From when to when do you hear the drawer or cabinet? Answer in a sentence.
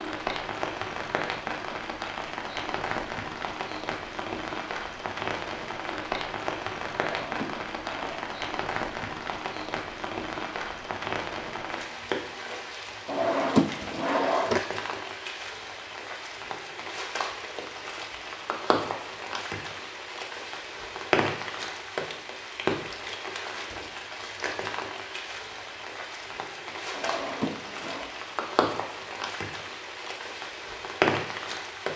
You can hear the drawer or cabinet from 7.0 to 8.2 s, from 13.1 to 14.6 s and from 26.9 to 28.1 s.